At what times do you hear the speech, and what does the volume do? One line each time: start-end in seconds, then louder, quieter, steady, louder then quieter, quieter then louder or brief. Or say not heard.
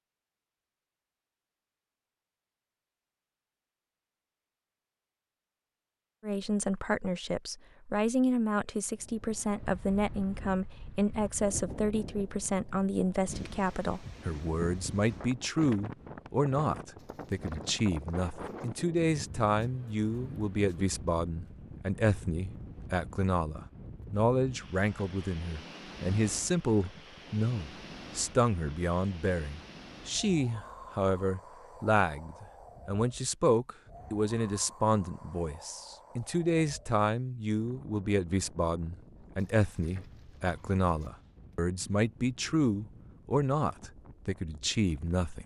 6.2-45.4 steady.